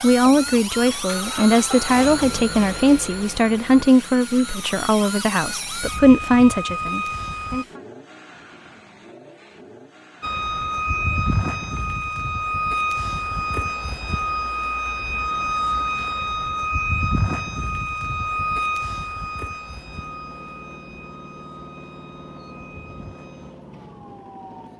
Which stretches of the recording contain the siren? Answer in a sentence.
The siren can be heard from 0.0 to 7.7 s and from 10.2 to 24.7 s.